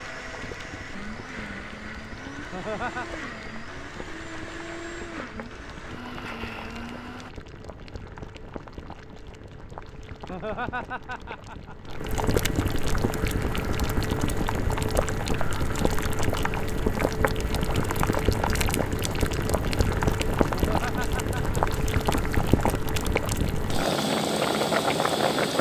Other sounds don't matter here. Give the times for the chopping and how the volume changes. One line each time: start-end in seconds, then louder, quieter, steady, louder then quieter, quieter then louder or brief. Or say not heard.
not heard.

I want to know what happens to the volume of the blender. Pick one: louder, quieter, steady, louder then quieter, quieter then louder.
steady.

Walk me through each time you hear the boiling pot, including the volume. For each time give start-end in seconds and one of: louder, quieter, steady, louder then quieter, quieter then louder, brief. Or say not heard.
0.0-25.5 louder.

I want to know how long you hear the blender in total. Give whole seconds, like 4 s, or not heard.
7 s.